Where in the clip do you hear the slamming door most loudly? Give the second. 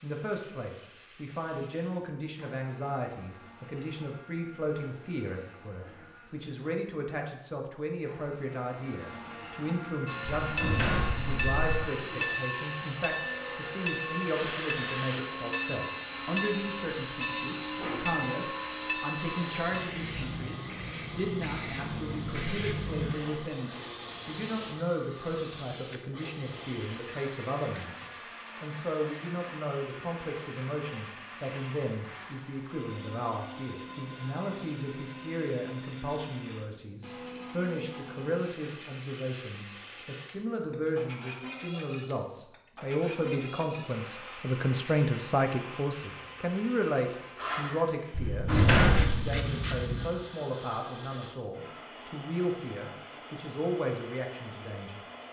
49 s.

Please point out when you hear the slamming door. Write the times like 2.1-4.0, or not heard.
10.4-11.8, 48.1-49.1.